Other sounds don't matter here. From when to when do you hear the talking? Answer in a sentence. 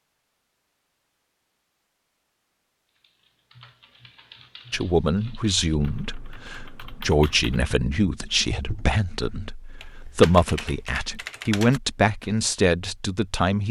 The talking can be heard from 4.7 to 13.6 s.